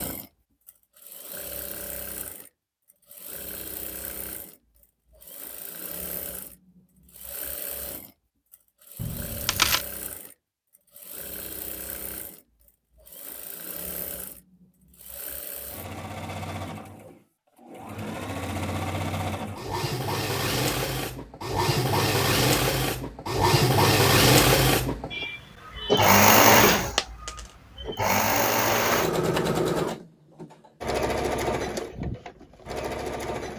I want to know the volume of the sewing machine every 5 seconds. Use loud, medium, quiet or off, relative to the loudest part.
quiet, quiet, quiet, quiet, loud, loud, medium.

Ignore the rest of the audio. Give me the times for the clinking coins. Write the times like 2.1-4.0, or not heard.
8.9-9.8, 26.9-27.4.